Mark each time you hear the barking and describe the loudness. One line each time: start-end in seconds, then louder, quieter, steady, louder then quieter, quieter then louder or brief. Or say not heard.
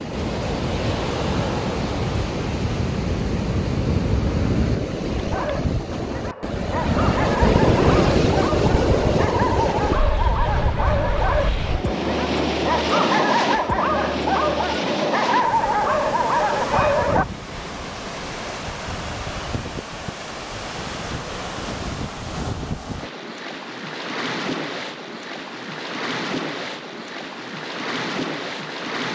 5.3-17.2 louder.